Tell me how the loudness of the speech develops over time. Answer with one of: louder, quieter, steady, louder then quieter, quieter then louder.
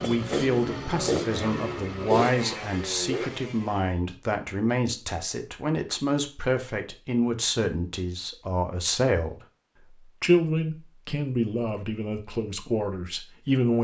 steady.